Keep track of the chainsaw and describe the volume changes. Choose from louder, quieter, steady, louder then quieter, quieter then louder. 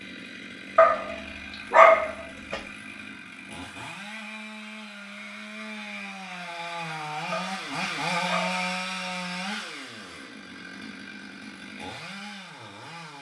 louder then quieter.